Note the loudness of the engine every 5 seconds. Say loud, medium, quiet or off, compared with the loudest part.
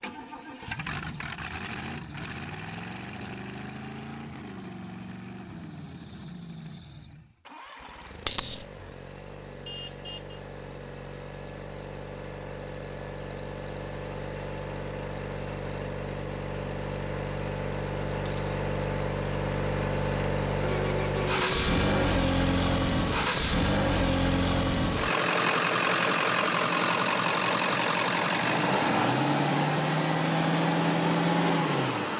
quiet, quiet, quiet, medium, loud, loud, loud.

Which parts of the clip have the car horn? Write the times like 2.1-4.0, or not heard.
9.7-10.4, 20.6-22.1.